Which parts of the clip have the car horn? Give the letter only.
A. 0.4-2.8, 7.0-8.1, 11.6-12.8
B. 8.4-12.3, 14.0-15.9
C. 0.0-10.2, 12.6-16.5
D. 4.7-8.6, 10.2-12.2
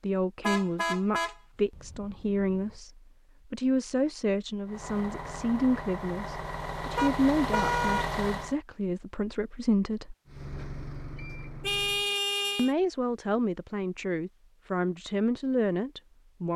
A.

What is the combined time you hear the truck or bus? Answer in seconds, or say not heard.
6 s.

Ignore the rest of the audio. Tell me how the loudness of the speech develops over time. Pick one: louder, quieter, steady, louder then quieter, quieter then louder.
steady.